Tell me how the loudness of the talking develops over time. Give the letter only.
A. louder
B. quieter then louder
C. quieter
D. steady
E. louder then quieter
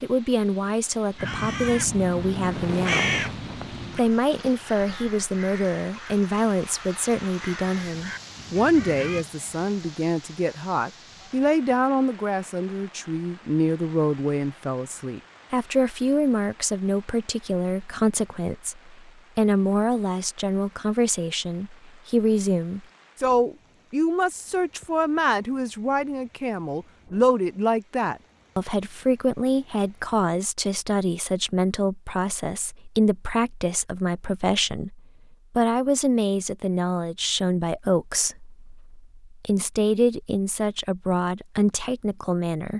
D.